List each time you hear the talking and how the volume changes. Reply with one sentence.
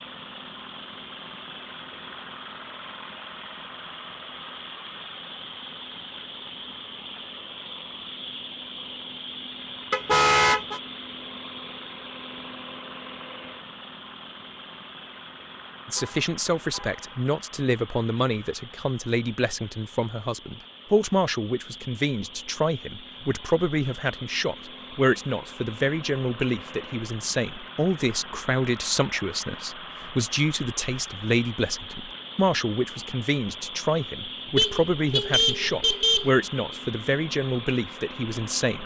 You can hear the talking from 15.8 to 38.8 s, at a steady volume.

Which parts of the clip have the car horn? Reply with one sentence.
The car horn can be heard from 9.9 to 10.8 s, from 15.9 to 17.2 s and from 34.5 to 36.3 s.